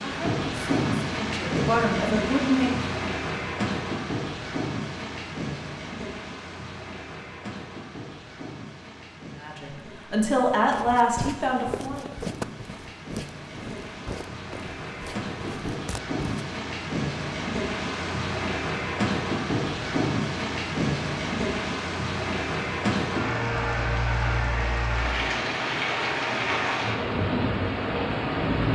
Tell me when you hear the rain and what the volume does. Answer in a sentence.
The rain can be heard from 0.0 to 28.7 s, getting quieter then louder.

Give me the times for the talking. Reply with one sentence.
The talking can be heard from 0.0 to 2.8 s and from 9.3 to 12.1 s.